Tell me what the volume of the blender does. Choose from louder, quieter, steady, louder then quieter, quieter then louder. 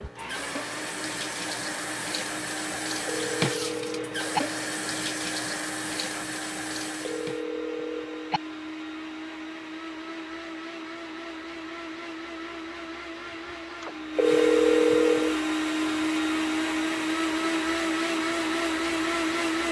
louder.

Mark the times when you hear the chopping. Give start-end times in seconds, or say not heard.
not heard.